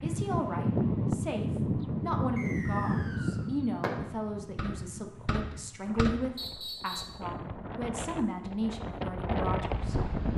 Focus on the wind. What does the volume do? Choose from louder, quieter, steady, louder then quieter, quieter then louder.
quieter then louder.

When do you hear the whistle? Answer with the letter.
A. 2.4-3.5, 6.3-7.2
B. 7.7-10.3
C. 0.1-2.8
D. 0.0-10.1
A.